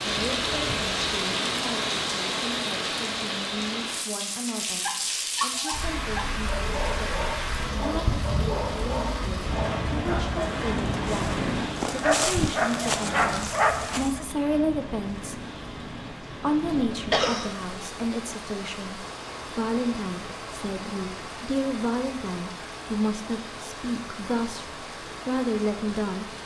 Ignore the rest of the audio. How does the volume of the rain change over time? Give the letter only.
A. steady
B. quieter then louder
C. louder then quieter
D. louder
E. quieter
E.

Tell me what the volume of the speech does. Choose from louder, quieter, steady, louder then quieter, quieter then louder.
louder.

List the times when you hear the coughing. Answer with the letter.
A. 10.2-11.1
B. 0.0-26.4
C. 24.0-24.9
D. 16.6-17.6
D.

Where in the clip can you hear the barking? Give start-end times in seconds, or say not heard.
4.8-14.2.